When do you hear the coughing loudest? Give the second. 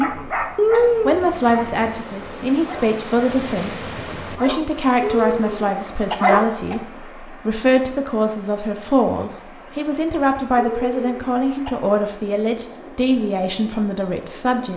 1 s.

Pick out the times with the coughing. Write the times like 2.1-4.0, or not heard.
0.6-1.3, 5.0-6.8, 10.6-11.8.